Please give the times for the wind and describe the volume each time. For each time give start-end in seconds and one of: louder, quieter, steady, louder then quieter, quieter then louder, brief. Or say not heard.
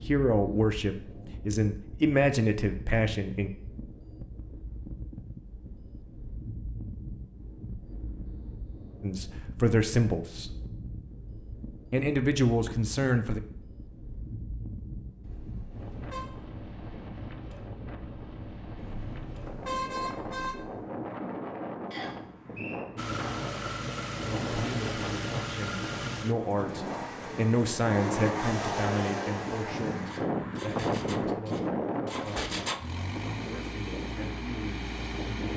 0.0-35.5 louder.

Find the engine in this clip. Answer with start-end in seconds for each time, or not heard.
22.9-35.5.